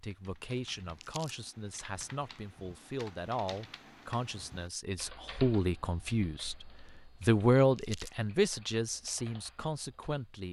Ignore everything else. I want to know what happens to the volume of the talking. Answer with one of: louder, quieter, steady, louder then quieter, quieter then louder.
louder then quieter.